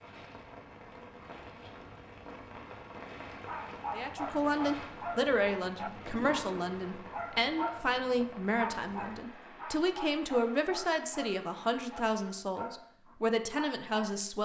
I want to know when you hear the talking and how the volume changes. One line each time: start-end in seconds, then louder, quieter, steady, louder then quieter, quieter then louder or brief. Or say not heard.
3.9-14.4 steady.